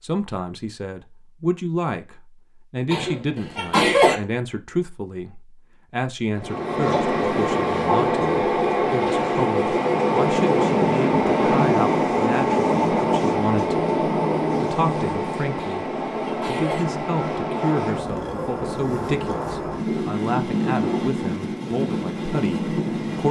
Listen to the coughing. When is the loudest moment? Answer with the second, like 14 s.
4 s.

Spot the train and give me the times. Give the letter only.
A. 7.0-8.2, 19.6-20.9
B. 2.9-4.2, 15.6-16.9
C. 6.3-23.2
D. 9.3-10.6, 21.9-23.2
C.